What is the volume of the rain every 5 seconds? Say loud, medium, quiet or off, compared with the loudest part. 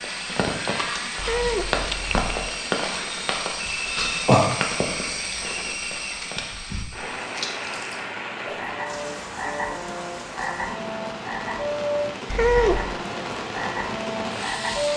loud, medium, medium.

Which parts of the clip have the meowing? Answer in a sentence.
You can hear the meowing from 1.1 to 2.4 s and from 12.2 to 12.9 s.